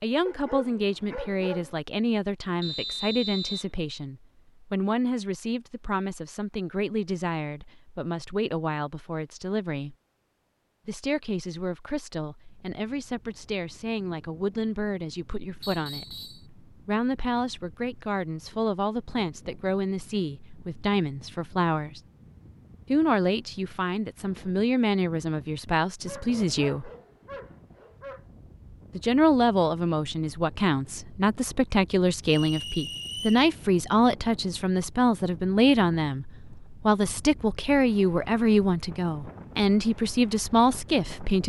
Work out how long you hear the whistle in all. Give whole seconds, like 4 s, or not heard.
3 s.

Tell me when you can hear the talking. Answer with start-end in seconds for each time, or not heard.
0.0-9.9, 10.8-22.0, 22.9-26.9, 28.9-41.4.